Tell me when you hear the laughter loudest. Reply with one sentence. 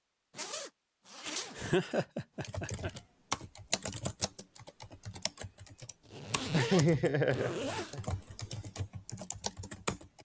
The volume of the laughter peaks at 7 seconds.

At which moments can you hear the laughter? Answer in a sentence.
The laughter can be heard from 1.6 to 2.9 s and from 6.5 to 8.0 s.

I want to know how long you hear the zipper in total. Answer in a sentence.
You can hear the zipper for 3 seconds altogether.